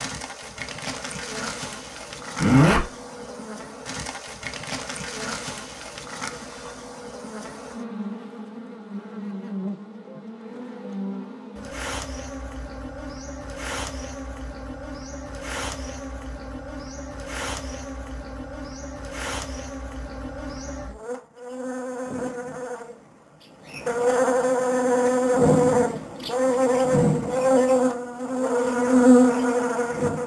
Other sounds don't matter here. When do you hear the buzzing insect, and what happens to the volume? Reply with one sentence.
The buzzing insect can be heard from 0.0 to 30.2 s, getting louder.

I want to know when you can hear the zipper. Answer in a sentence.
The zipper can be heard from 2.4 to 2.9 s.